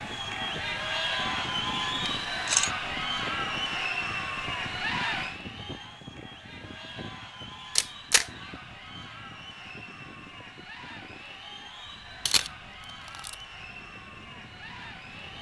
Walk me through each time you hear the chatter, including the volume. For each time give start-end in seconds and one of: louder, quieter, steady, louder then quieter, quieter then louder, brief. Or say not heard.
0.0-15.3 quieter.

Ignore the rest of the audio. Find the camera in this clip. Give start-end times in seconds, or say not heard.
2.1-2.7, 7.8-8.2, 12.2-13.3.